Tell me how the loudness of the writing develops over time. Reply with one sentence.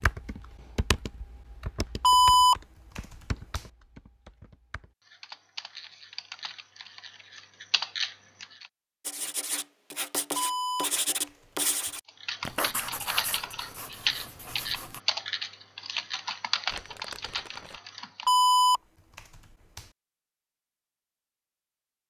The volume of the writing goes down.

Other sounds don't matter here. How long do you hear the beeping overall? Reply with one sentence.
You can hear the beeping for 5 seconds altogether.